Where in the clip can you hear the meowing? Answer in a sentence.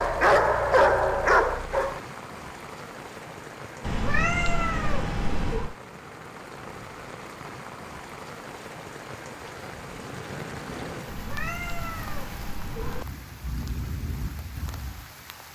The meowing can be heard from 3.8 to 5.8 s and from 11.1 to 13.1 s.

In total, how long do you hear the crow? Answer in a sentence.
You can't hear the crow here.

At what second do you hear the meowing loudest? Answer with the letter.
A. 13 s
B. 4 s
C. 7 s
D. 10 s
B.